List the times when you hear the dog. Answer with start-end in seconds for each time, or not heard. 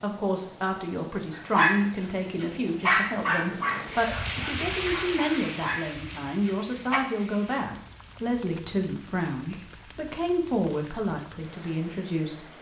1.3-7.0.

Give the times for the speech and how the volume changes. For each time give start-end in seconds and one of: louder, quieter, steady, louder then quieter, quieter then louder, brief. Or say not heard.
0.0-12.5 steady.